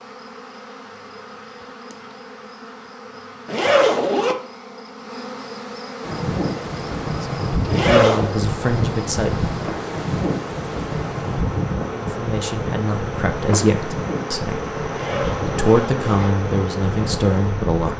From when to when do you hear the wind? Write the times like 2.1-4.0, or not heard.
6.0-17.8.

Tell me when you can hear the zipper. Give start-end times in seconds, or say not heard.
3.5-4.3, 7.7-8.3, 14.9-16.4.